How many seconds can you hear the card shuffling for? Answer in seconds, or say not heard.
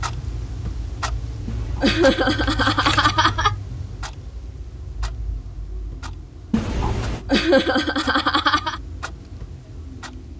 3 s.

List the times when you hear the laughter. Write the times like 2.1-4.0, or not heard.
1.8-3.5, 7.2-8.8.